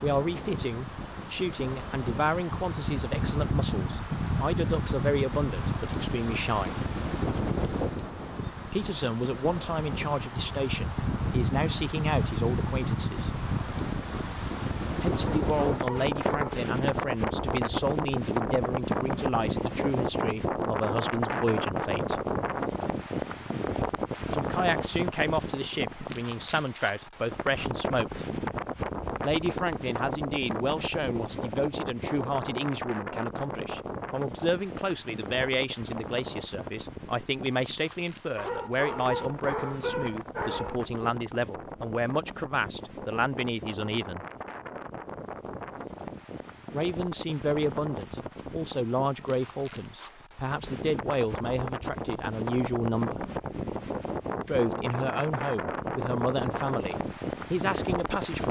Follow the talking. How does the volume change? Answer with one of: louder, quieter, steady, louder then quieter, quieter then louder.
steady.